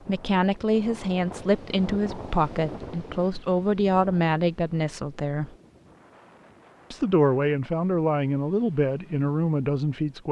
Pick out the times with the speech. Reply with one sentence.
The speech can be heard from 0.1 to 5.5 s and from 6.9 to 10.2 s.